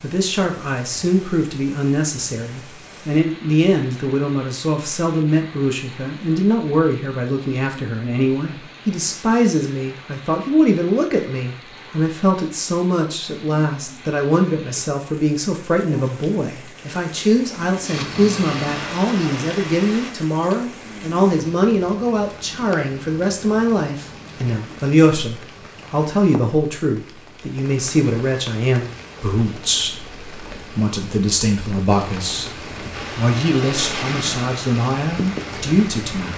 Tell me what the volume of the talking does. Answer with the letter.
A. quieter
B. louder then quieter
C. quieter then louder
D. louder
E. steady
E.